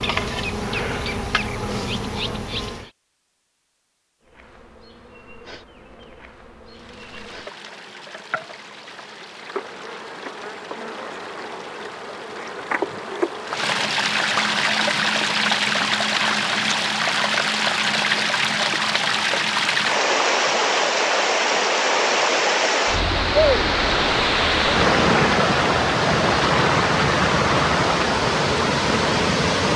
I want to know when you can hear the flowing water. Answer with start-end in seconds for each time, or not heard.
6.7-29.7.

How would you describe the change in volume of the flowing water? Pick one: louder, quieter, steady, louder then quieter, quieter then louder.
louder.